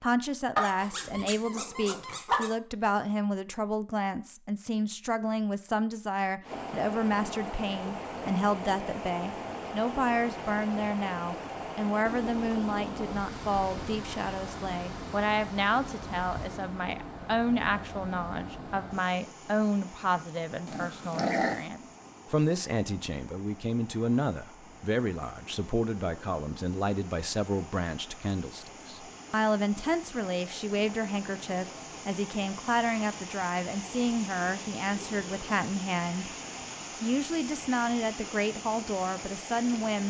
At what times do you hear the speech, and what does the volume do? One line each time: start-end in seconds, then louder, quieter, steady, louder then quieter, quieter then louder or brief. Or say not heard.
0.0-40.0 steady.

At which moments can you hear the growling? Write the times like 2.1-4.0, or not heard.
0.6-2.5, 20.6-21.6.